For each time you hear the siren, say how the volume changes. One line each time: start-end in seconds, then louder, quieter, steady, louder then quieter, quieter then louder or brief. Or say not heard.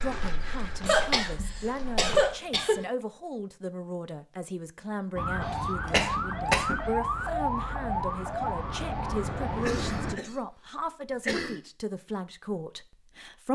5.2-10.2 steady.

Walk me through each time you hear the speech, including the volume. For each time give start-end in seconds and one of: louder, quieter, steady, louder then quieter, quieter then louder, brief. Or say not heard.
0.0-13.5 steady.